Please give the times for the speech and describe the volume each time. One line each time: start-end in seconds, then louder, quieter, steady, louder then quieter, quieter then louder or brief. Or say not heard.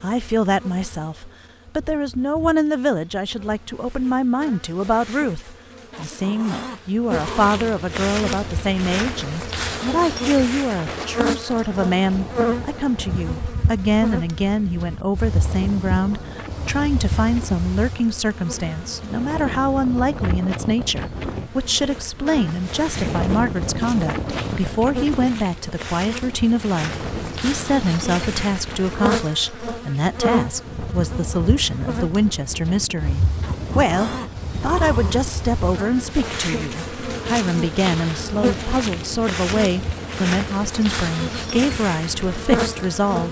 0.0-43.2 steady.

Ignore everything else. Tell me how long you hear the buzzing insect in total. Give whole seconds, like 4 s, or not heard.
43 s.